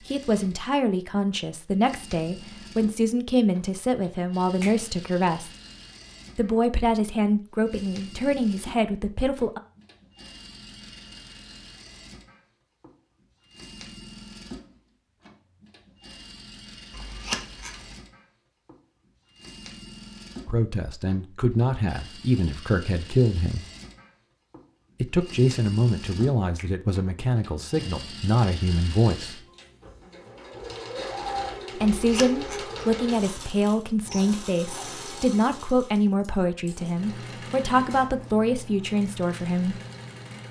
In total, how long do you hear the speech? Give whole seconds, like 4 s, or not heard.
24 s.